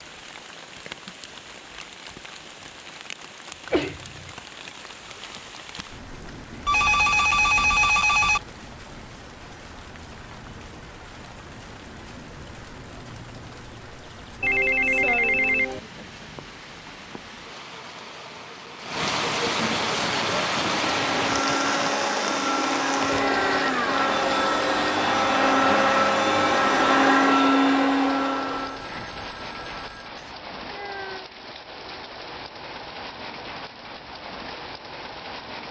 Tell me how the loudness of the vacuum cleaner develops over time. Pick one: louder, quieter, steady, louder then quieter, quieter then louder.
louder.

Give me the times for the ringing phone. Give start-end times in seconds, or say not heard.
6.7-8.4, 14.4-15.8, 28.4-30.1.